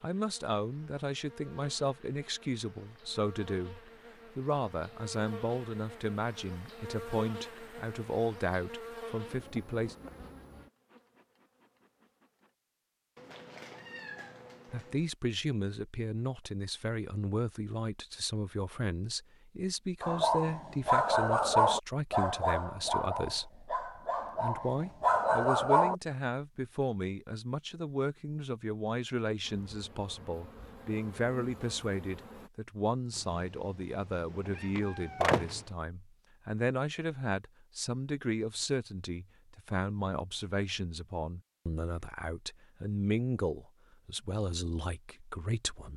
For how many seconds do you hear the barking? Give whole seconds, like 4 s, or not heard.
6 s.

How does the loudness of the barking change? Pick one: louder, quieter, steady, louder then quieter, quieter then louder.
quieter then louder.